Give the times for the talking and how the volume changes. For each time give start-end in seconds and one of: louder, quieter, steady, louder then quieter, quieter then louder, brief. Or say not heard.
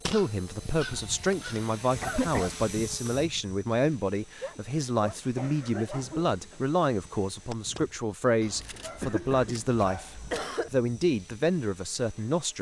0.1-12.5 steady.